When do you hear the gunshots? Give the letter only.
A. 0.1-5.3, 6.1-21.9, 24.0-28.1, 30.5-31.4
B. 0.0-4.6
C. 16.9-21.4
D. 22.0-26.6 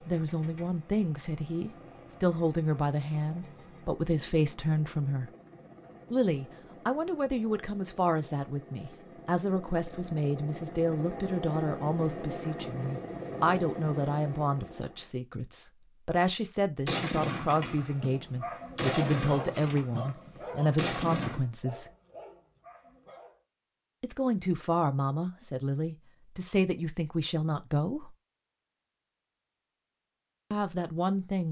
C.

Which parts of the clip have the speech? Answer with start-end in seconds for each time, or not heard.
0.1-5.3, 6.1-21.9, 24.0-28.1, 30.5-31.4.